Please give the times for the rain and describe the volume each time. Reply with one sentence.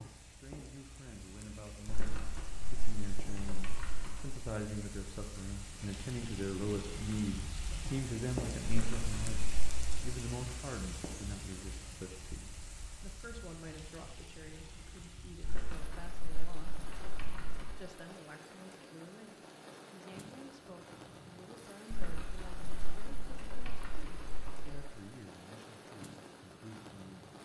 You can hear the rain from 0.0 to 27.3 s, getting louder then quieter.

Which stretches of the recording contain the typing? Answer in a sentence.
You can hear the typing from 1.9 to 4.3 s, from 8.7 to 9.9 s, from 15.4 to 17.7 s and from 21.9 to 24.8 s.